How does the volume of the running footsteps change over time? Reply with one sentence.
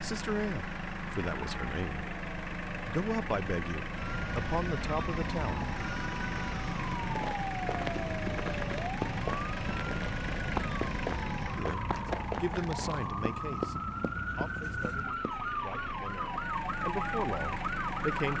The volume of the running footsteps stays about the same.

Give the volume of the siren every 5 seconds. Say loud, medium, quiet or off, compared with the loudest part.
medium, loud, loud, loud.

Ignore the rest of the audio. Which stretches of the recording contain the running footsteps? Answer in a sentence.
You can hear the running footsteps from 7.0 to 15.4 s.